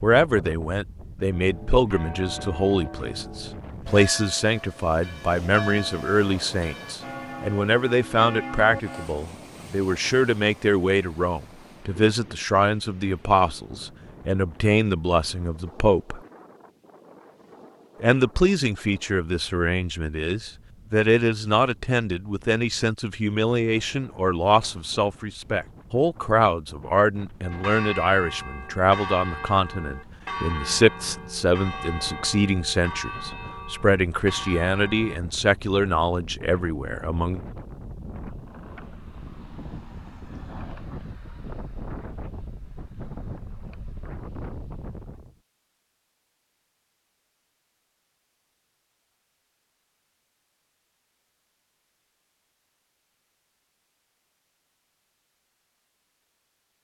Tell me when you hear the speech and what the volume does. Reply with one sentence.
You can hear the speech from 0.0 to 16.2 s, at a steady volume; and from 18.0 to 37.4 s, at a steady volume.